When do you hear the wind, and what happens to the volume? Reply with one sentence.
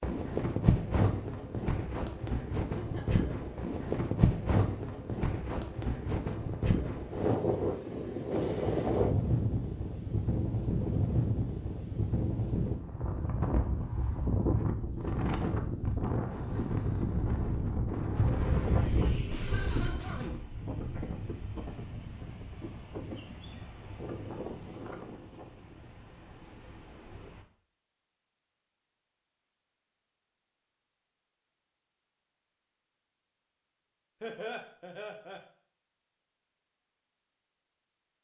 You can hear the wind from 0.0 to 27.4 s, getting quieter.